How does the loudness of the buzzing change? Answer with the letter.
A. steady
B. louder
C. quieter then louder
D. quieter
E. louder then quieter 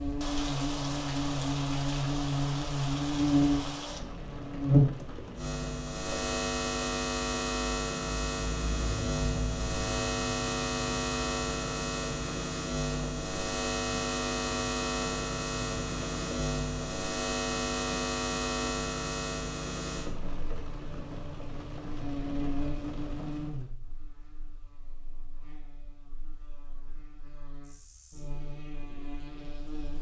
D.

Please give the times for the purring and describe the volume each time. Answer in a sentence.
You can't hear the purring here.